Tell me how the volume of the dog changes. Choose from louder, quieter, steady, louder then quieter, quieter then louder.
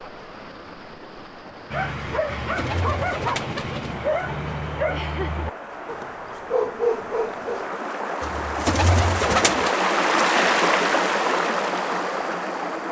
quieter then louder.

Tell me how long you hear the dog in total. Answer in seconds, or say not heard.
6 s.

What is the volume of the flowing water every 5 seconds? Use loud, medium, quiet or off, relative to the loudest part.
quiet, medium, loud.